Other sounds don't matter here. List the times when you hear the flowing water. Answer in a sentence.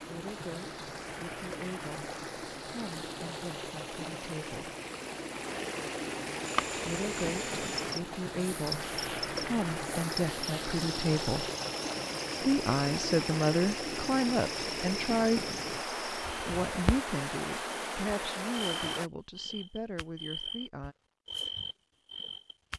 You can hear the flowing water from 0.0 to 19.1 s.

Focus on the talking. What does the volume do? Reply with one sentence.
The loudness of the talking goes up, then down.